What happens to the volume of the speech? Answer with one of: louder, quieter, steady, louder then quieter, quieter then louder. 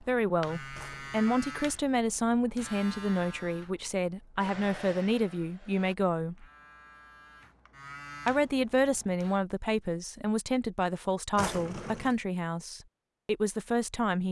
steady.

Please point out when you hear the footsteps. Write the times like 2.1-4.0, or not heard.
not heard.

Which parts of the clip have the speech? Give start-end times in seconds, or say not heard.
0.0-6.5, 8.2-14.2.